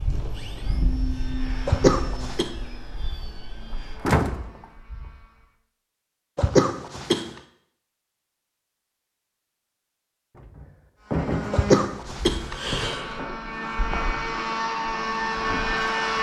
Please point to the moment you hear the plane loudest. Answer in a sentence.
The volume of the plane peaks at 16 seconds.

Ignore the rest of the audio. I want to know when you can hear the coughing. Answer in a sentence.
You can hear the coughing from 1.6 to 2.5 s, from 6.3 to 7.2 s and from 11.5 to 13.1 s.